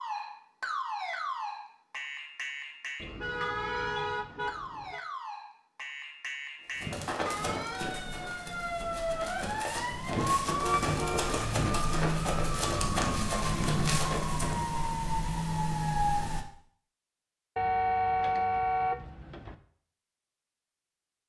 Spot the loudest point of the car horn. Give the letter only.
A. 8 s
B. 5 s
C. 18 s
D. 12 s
C.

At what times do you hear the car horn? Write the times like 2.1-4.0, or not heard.
3.0-5.0, 10.6-11.4, 17.6-19.6.